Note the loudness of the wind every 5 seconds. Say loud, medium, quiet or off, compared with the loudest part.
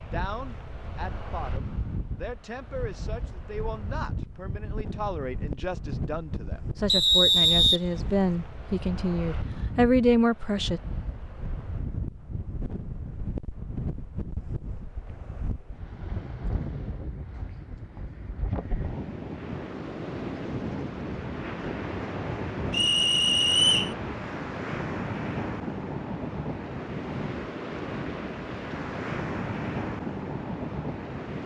medium, medium, medium, medium, loud, loud, loud.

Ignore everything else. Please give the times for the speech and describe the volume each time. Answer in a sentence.
The speech can be heard from 0.0 to 10.8 s, getting louder.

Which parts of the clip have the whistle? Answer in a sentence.
You can hear the whistle from 6.8 to 8.3 s and from 22.7 to 23.9 s.